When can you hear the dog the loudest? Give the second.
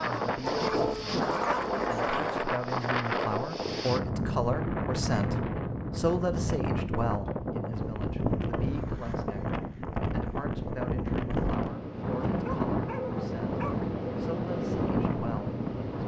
1 s.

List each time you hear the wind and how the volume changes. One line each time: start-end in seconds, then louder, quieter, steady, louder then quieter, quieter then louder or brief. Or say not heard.
0.0-16.0 steady.